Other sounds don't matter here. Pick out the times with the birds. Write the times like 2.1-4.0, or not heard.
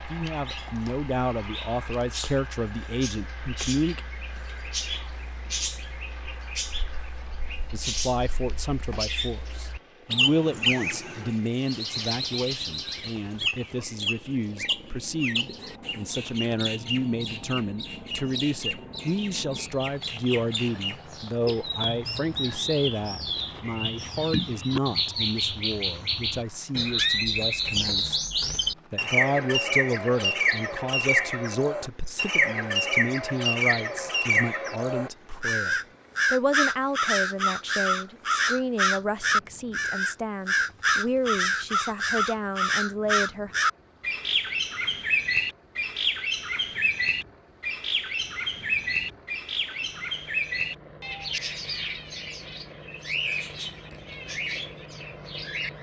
0.0-55.7.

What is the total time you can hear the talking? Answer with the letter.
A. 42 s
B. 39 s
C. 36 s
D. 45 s
B.